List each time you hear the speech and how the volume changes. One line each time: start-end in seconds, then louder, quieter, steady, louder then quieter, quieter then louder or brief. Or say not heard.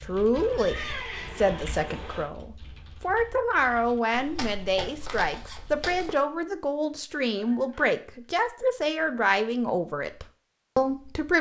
0.0-11.3 steady.